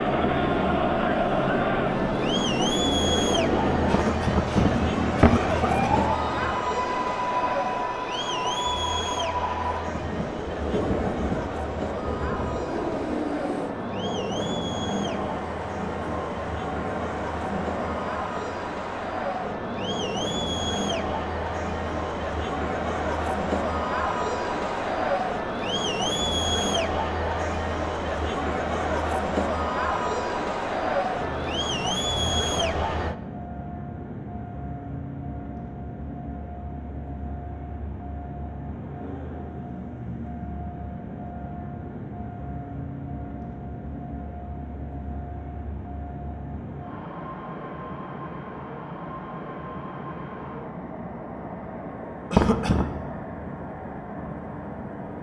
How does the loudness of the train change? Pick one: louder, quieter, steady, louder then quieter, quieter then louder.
quieter.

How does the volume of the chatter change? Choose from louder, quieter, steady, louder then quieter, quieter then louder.
quieter then louder.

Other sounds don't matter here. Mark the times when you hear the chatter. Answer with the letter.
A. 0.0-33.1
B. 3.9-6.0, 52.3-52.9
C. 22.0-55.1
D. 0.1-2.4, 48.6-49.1
A.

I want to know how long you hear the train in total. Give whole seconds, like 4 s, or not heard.
55 s.